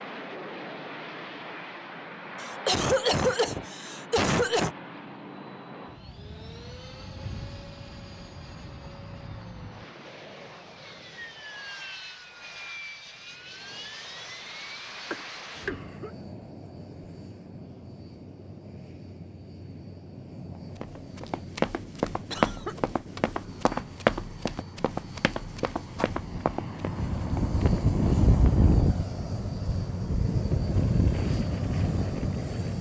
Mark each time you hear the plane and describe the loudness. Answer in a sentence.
The plane can be heard from 0.0 to 32.7 s, getting louder.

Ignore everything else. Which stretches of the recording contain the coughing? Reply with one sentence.
You can hear the coughing from 2.4 to 4.8 s, from 15.1 to 16.1 s and from 22.2 to 22.8 s.